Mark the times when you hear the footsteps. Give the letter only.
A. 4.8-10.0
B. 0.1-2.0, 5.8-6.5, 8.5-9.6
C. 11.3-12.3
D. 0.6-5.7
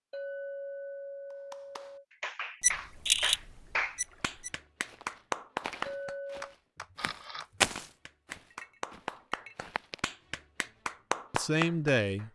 A.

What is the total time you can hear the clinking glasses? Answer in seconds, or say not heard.
4 s.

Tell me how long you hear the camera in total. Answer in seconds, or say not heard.
3 s.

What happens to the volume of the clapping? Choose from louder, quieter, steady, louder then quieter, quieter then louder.
quieter then louder.